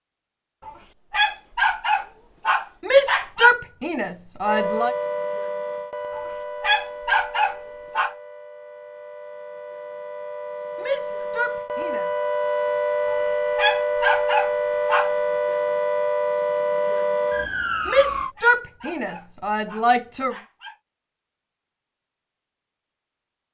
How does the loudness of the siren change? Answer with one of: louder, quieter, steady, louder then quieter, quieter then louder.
quieter then louder.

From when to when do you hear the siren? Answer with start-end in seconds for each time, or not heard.
4.4-18.4.